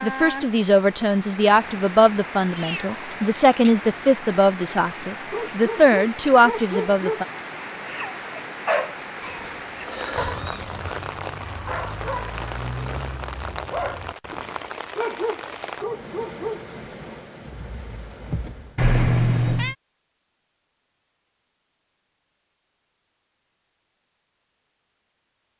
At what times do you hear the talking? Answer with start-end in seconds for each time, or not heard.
0.0-7.2.